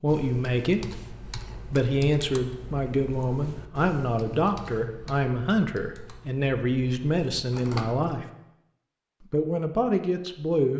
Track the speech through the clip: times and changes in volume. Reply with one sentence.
The speech can be heard from 0.0 to 8.2 s, at a steady volume; and briefly from 9.3 to 10.7 s.